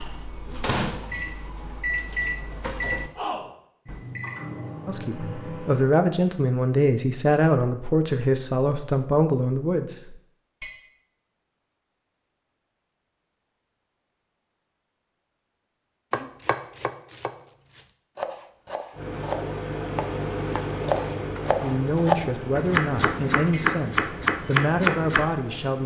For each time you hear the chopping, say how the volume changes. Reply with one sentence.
The chopping can be heard from 16.1 to 25.2 s, getting louder.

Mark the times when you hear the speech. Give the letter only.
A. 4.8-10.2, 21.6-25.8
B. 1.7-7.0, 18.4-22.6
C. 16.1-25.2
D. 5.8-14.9
A.